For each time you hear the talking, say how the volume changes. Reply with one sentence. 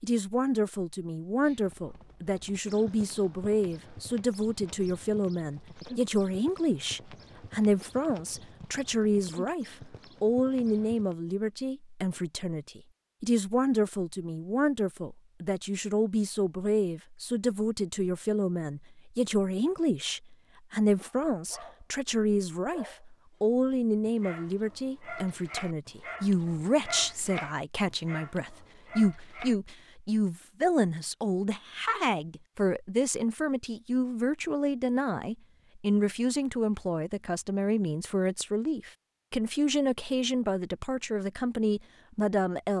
You can hear the talking from 0.0 to 42.7 s, at a steady volume.